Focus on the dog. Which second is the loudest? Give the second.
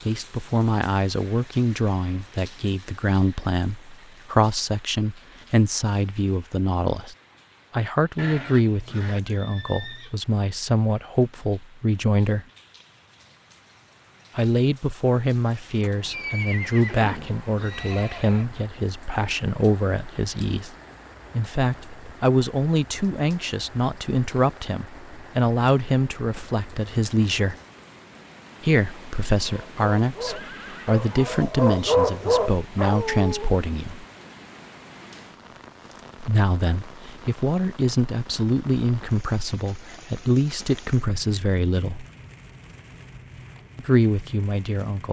32 s.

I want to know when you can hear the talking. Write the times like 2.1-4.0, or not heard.
0.1-12.4, 14.3-20.7, 21.3-27.6, 28.6-34.0, 36.2-42.0, 43.8-45.0.